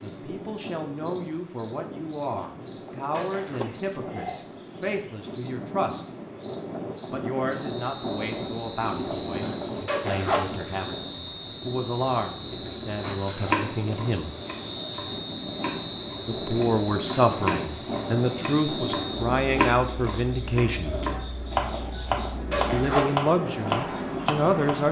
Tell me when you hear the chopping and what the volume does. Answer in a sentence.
The chopping can be heard from 13.0 to 24.8 s, at a steady volume.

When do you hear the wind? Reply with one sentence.
The wind can be heard from 0.0 to 24.7 s.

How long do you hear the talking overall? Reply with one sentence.
You can hear the talking for 20 seconds altogether.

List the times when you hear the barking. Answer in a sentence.
The barking can't be heard in this clip.